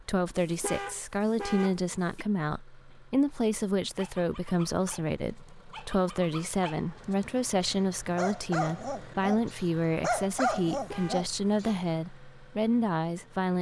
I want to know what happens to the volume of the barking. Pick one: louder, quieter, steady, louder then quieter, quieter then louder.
louder.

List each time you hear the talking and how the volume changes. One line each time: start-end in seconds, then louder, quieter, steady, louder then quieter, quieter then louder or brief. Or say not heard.
0.0-13.5 steady.